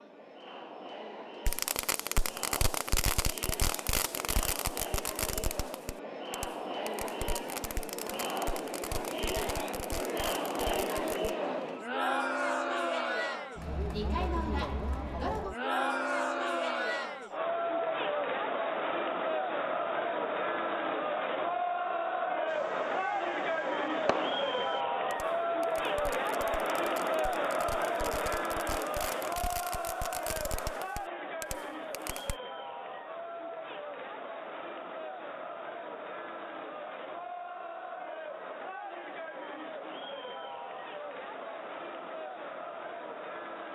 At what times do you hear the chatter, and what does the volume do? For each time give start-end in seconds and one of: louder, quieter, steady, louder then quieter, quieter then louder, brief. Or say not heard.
0.0-43.7 louder then quieter.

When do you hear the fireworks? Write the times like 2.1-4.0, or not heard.
1.4-11.3, 22.4-32.4.